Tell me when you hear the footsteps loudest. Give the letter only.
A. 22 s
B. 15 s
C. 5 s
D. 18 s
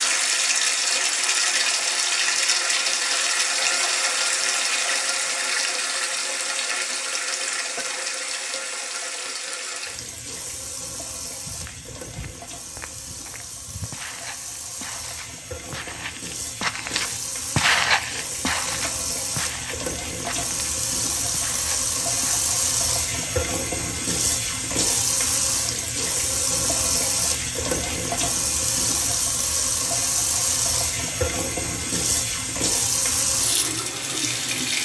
D.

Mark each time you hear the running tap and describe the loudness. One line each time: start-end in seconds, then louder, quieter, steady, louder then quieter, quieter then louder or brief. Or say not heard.
0.0-34.7 quieter then louder.